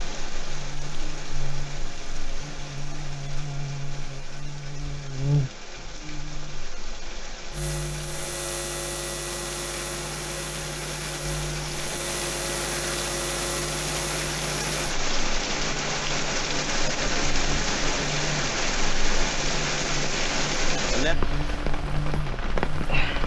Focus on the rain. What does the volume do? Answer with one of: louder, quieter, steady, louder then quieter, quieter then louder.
louder.